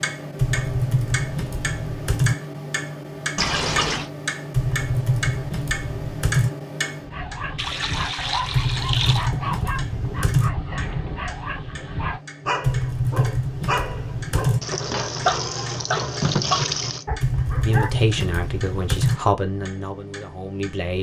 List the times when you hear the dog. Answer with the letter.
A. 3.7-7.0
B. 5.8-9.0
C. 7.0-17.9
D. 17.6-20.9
C.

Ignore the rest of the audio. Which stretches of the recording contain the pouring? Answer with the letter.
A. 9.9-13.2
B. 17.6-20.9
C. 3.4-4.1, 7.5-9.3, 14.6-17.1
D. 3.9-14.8
C.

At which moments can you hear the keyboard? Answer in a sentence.
You can hear the keyboard from 0.3 to 2.4 s, from 4.5 to 6.5 s, from 8.5 to 10.5 s, from 12.6 to 14.6 s and from 17.2 to 19.2 s.